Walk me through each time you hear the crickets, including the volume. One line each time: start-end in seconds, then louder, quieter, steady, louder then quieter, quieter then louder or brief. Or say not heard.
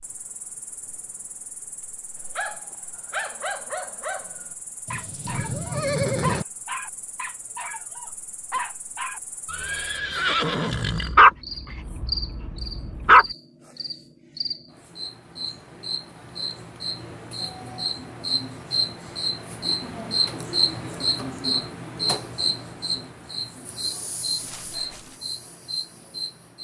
0.0-26.6 louder.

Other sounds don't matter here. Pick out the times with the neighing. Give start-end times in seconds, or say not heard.
4.8-6.5, 9.4-11.2, 24.4-25.2.